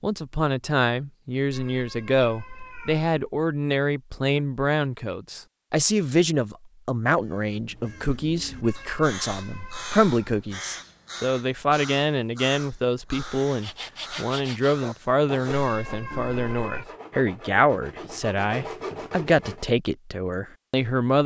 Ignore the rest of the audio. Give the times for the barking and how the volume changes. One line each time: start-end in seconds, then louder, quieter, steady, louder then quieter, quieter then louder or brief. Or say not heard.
not heard.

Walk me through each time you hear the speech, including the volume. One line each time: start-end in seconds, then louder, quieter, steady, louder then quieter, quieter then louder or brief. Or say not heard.
0.0-21.2 steady.